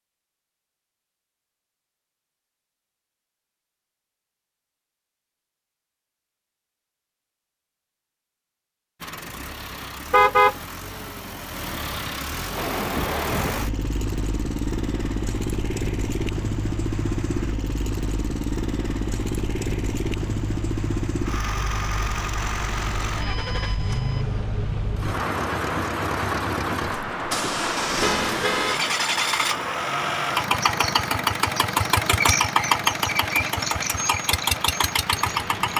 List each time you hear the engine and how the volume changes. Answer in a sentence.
You can hear the engine from 9.0 to 35.7 s, getting louder.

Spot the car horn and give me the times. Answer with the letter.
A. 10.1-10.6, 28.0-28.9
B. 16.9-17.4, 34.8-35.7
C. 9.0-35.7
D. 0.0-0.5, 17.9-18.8
A.